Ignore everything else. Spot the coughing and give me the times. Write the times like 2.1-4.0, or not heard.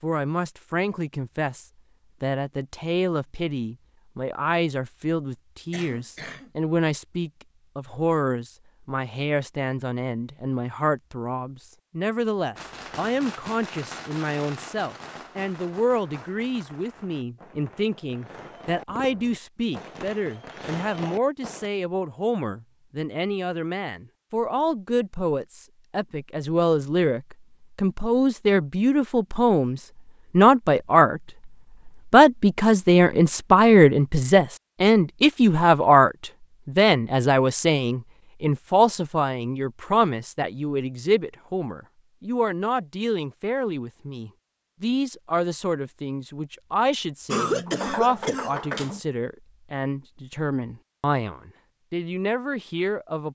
5.7-6.5, 47.2-49.0.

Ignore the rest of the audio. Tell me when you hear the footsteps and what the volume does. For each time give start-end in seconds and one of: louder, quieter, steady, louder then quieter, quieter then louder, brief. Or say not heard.
not heard.